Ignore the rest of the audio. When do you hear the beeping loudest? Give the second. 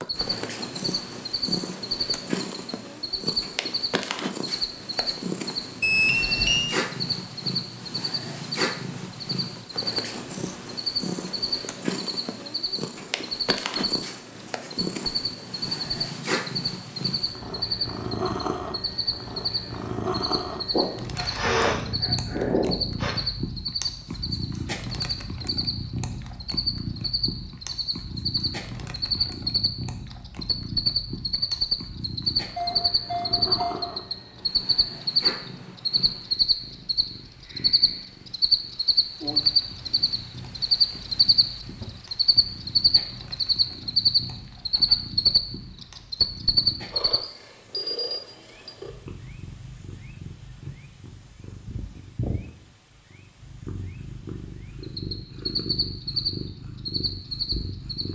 6 s.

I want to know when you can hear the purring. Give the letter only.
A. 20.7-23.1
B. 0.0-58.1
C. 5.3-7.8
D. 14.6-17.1
B.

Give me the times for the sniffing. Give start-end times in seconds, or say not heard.
20.7-23.1.